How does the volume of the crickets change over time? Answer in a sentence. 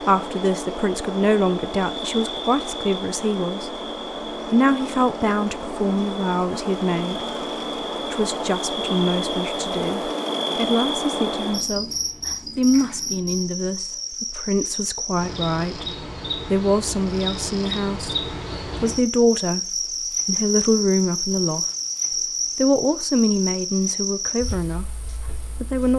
The loudness of the crickets stays about the same.